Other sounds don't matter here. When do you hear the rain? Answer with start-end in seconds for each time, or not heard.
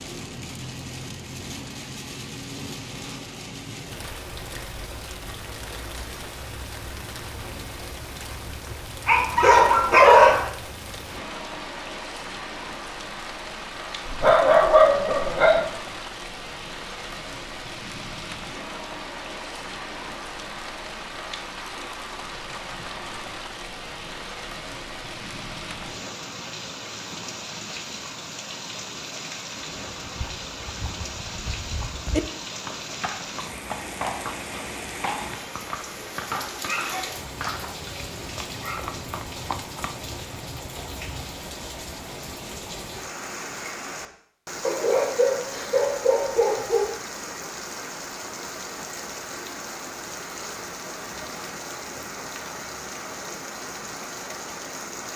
0.0-55.1.